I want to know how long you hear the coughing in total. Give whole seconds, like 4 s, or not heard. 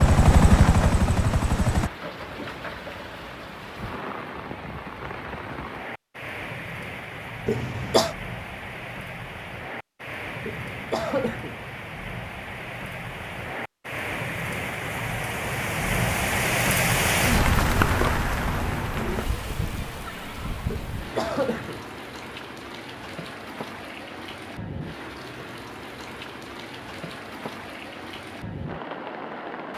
3 s.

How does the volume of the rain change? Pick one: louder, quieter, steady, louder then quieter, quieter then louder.
louder then quieter.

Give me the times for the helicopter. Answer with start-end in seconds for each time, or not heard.
0.0-1.9.